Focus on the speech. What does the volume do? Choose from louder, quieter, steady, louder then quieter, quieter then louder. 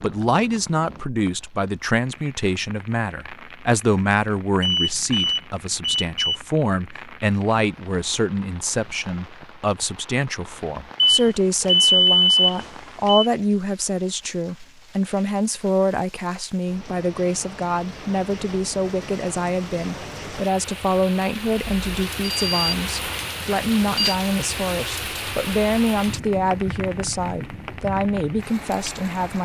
steady.